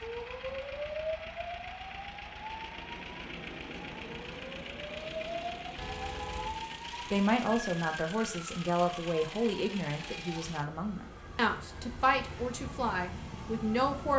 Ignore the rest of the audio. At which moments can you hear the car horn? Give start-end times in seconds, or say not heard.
5.8-6.6.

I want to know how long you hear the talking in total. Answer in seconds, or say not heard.
7 s.